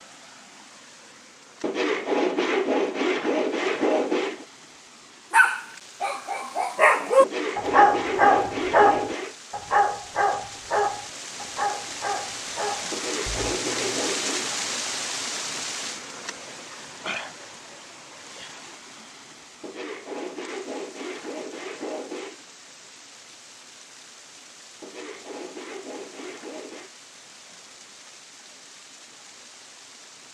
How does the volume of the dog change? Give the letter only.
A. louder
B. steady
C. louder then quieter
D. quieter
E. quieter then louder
D.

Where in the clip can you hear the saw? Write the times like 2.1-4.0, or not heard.
1.6-4.5, 7.2-9.3, 12.9-14.5, 19.6-22.4, 24.8-26.9.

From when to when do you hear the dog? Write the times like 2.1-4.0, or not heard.
5.3-14.0.